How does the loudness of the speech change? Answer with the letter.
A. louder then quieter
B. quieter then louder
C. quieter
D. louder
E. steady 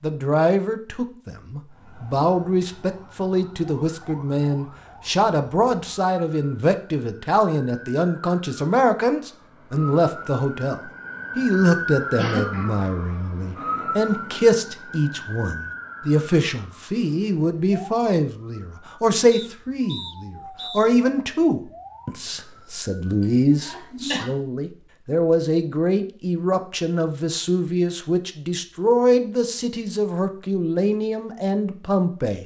E.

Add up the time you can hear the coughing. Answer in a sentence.
The coughing can be heard for 2 seconds in total.